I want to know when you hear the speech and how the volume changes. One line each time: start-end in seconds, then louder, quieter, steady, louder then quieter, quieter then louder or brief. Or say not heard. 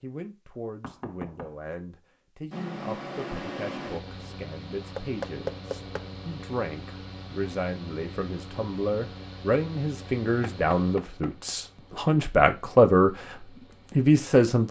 0.0-14.6 louder.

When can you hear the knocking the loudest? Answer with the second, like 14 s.
5 s.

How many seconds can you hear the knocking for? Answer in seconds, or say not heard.
3 s.